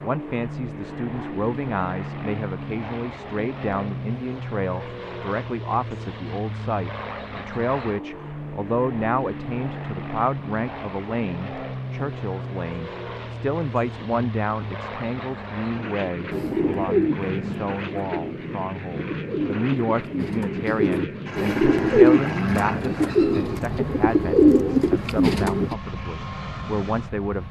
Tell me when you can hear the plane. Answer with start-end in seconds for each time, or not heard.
0.0-27.4.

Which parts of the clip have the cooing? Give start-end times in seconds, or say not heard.
16.3-25.8.